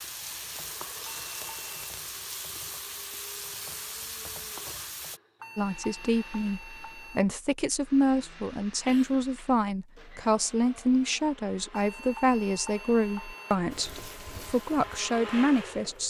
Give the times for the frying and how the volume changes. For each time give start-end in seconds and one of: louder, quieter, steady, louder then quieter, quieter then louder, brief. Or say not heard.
0.0-5.2 steady
13.7-16.0 brief.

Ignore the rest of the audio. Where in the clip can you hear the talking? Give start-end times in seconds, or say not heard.
5.5-16.0.